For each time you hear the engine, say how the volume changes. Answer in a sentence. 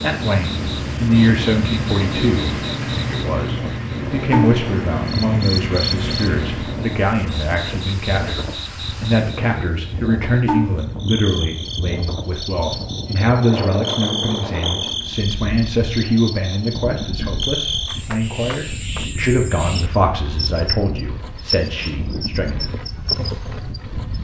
The engine can be heard from 0.0 to 6.9 s, at a steady volume.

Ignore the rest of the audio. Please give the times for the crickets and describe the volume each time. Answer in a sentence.
You can hear the crickets from 0.0 to 24.2 s, at a steady volume.